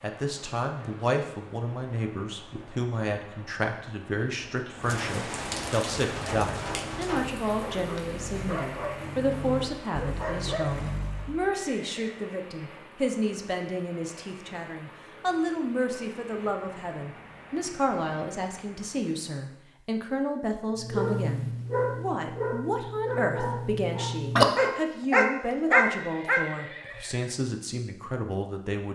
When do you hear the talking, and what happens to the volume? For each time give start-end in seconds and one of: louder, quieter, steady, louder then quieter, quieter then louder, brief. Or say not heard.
0.0-28.9 steady.